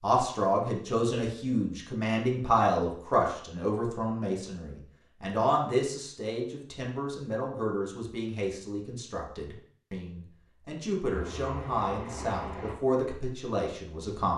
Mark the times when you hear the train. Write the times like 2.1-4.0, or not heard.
11.1-12.8.